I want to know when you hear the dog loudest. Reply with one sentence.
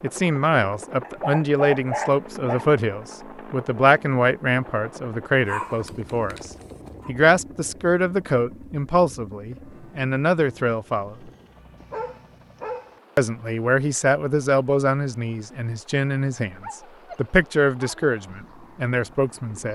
The loudest moment of the dog is at 2 seconds.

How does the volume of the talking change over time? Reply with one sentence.
The volume of the talking stays about the same.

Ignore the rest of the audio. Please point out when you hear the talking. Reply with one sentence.
The talking can be heard from 0.0 to 11.2 s and from 13.2 to 19.6 s.